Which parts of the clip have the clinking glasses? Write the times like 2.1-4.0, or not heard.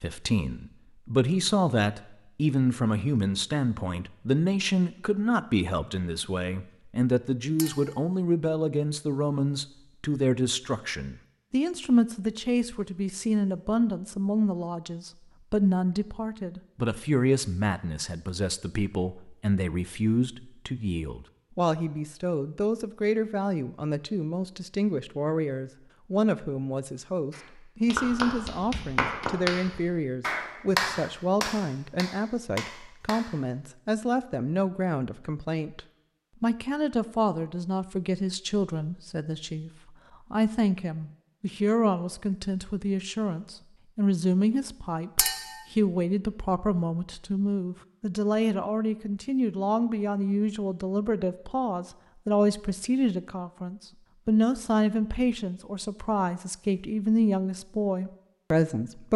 7.5-8.0, 45.1-45.6.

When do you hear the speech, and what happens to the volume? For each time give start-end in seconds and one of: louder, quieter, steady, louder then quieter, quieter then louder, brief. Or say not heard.
0.0-59.1 steady.